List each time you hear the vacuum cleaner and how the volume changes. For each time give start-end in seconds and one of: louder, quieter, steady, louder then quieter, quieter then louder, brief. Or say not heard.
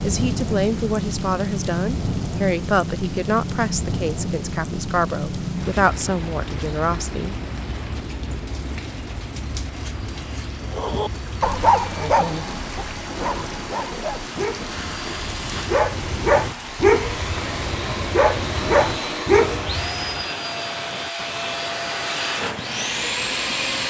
9.7-23.8 louder.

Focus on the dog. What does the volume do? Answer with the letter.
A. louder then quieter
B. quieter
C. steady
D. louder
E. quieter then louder
E.